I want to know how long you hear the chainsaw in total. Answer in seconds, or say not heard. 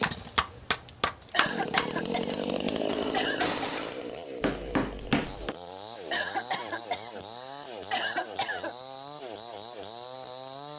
11 s.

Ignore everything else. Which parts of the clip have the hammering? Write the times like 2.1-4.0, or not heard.
0.0-5.5.